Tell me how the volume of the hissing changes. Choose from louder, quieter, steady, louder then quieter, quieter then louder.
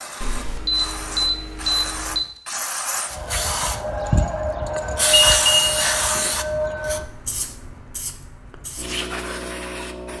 louder then quieter.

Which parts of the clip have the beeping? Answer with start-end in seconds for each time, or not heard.
0.2-2.2, 5.1-6.3.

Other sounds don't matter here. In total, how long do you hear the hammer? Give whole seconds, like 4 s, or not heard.
not heard.